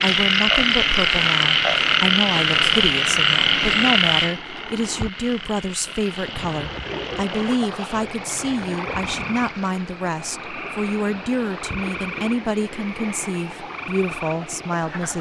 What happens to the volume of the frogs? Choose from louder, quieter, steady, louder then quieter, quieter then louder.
quieter.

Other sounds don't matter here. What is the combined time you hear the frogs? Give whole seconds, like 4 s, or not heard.
15 s.